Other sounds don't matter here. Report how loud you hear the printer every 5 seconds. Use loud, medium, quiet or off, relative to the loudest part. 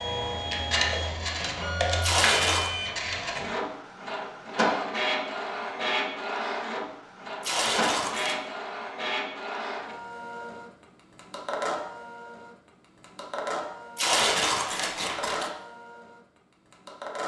loud, loud, medium, medium.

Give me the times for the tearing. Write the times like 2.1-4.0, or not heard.
2.0-2.7, 7.4-8.4, 13.9-15.5.